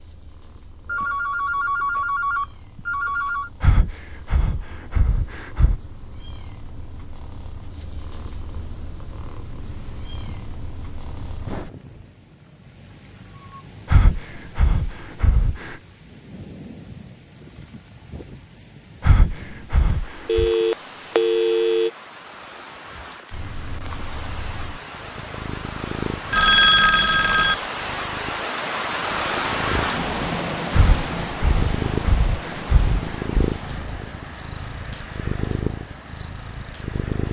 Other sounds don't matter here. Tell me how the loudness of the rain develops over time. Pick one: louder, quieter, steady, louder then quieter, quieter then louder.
louder then quieter.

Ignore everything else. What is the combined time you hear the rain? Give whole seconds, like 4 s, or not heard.
28 s.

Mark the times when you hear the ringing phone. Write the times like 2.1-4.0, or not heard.
0.8-3.5, 20.2-21.9, 26.3-27.6.